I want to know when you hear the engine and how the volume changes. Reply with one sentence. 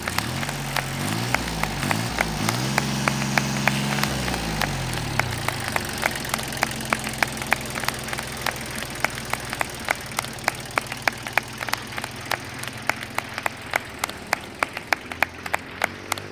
You can hear the engine from 0.0 to 16.2 s, getting quieter.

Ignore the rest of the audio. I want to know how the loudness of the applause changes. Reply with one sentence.
The volume of the applause stays about the same.